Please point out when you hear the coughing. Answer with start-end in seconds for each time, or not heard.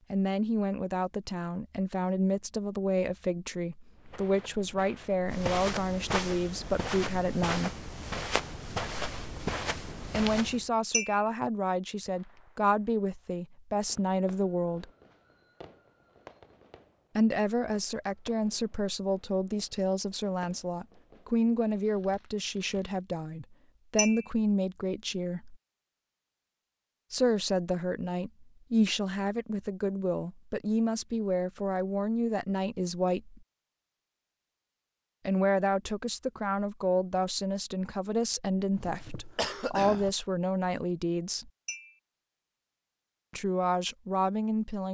38.8-40.1.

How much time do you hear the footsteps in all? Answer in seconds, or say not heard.
7 s.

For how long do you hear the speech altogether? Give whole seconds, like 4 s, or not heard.
35 s.